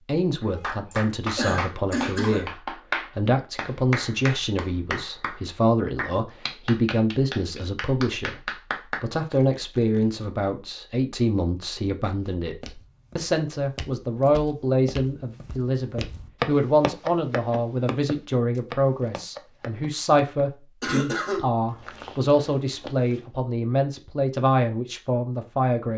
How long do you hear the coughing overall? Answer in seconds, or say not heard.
2 s.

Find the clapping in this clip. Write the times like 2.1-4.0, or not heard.
0.4-9.0.